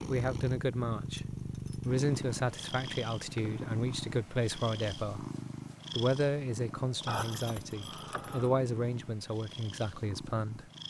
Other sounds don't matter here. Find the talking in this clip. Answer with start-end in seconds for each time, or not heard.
0.1-5.2, 5.9-10.7.